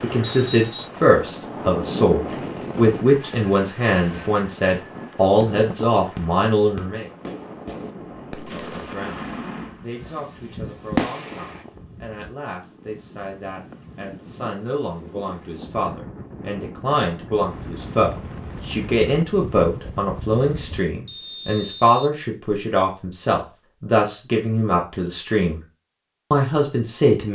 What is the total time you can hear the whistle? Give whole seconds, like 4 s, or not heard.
2 s.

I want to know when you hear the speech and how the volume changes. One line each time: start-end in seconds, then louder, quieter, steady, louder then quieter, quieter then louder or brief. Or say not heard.
0.0-7.0 steady
8.5-25.6 louder
26.3-27.3 brief.